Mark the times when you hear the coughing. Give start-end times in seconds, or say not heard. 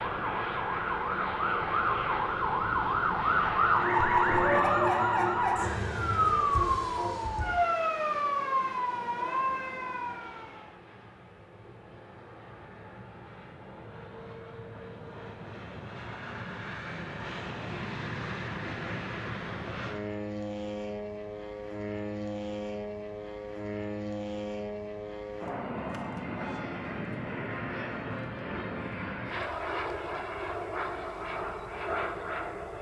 not heard.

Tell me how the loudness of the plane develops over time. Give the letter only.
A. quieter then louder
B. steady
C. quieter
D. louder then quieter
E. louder
A.